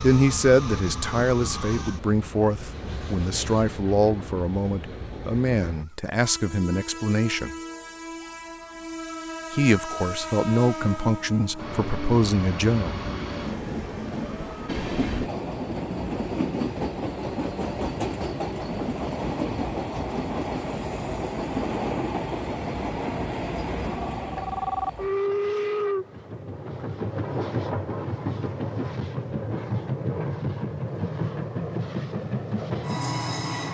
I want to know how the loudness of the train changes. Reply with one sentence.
The loudness of the train goes up.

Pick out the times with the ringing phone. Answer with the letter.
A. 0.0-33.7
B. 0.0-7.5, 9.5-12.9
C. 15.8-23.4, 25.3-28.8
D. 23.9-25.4
D.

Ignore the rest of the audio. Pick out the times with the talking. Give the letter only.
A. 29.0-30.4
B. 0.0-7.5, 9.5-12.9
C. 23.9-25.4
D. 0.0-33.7
B.